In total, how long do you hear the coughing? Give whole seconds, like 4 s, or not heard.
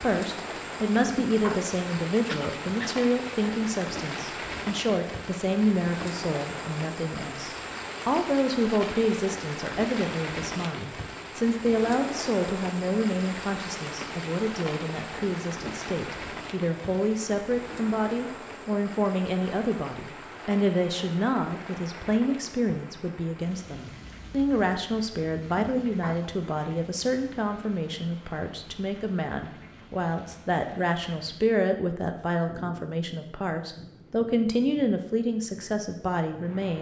3 s.